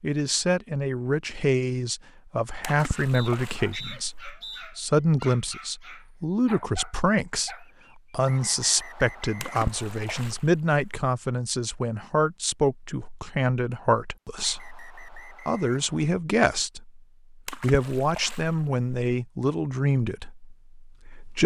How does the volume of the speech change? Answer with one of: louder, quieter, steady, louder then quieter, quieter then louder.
steady.